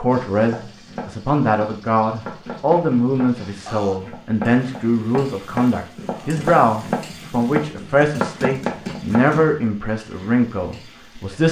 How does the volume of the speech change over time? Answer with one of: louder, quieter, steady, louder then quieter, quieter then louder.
steady.